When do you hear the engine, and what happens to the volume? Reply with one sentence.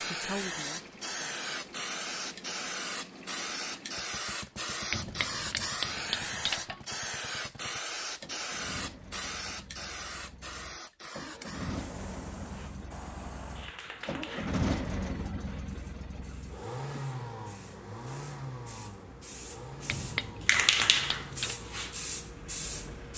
The engine can be heard from 0.0 to 23.1 s, getting louder then quieter.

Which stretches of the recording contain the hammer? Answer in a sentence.
The hammer can be heard from 4.9 to 6.8 s and from 19.9 to 21.6 s.